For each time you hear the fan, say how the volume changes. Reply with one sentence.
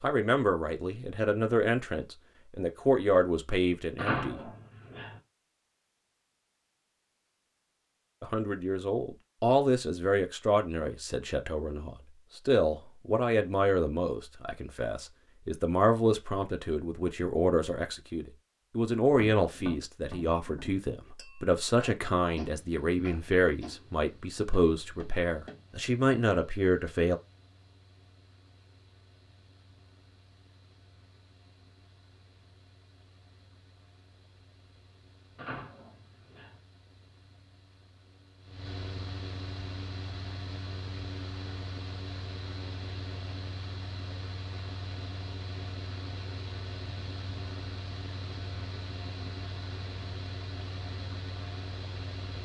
The fan can be heard from 22.4 to 52.4 s, getting louder.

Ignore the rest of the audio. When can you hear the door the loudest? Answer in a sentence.
The loudest moment of the door is at 4 seconds.